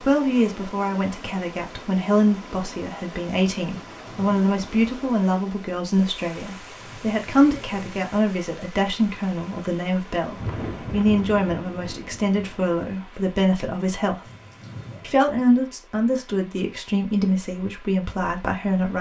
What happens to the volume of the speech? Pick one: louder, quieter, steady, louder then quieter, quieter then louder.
steady.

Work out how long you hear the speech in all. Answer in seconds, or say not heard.
18 s.